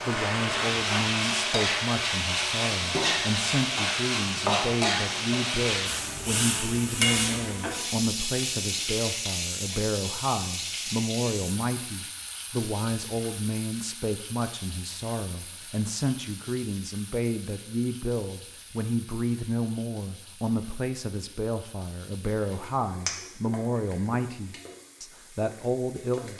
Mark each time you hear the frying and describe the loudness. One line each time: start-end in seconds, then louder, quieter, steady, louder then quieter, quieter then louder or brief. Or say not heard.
0.0-26.3 quieter.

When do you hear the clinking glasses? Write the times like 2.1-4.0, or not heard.
9.2-9.8, 23.1-23.6.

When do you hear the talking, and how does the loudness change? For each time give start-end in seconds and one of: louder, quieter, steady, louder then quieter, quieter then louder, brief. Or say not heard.
0.1-26.3 steady.